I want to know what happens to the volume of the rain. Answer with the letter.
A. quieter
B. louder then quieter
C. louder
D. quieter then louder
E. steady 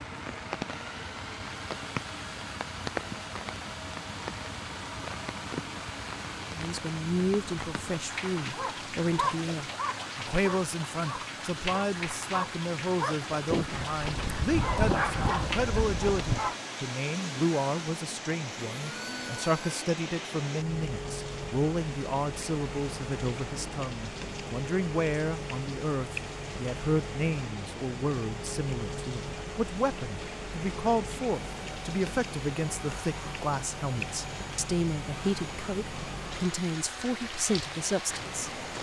E.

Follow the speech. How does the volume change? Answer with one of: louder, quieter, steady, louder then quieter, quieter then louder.
steady.